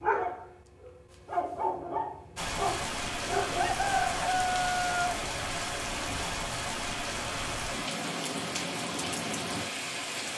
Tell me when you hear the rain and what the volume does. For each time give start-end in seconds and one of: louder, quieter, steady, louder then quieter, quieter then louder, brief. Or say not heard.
2.4-10.3 steady.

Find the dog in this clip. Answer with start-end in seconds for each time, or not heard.
0.0-3.9.